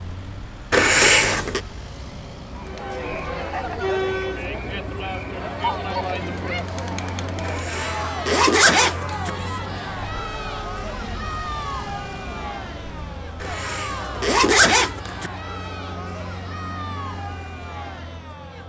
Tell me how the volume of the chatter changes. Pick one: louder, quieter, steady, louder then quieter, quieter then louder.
quieter.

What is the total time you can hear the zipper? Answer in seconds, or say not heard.
5 s.